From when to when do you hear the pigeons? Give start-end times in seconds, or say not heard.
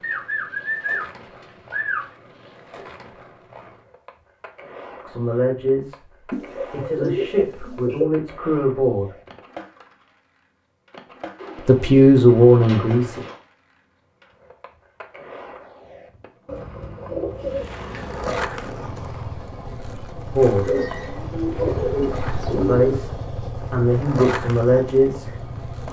0.0-2.0, 6.3-8.1, 11.3-13.4, 16.4-18.3, 20.6-23.0.